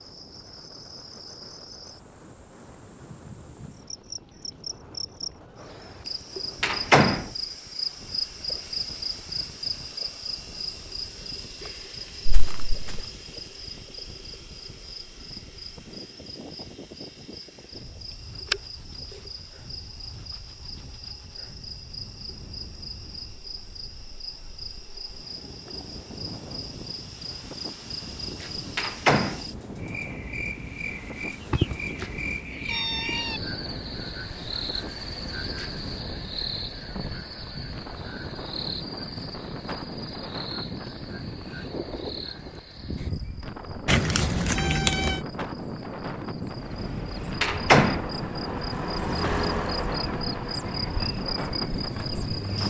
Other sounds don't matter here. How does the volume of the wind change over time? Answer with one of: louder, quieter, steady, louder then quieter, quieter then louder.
louder.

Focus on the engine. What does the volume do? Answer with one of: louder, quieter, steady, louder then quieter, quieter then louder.
louder then quieter.